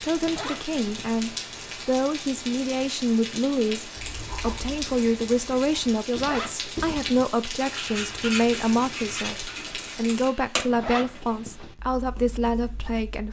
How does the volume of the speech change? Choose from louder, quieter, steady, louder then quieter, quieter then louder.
steady.